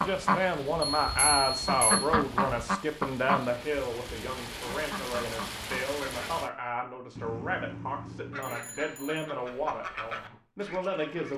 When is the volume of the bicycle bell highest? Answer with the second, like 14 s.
1 s.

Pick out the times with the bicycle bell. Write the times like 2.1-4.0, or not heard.
1.0-2.0, 7.2-9.3.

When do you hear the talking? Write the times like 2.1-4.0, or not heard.
0.0-11.3.